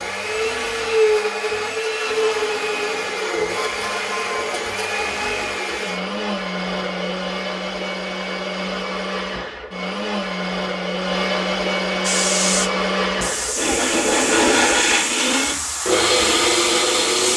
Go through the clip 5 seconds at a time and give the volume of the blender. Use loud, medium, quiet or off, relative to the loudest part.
loud, medium, loud, loud.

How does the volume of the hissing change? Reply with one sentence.
The loudness of the hissing stays about the same.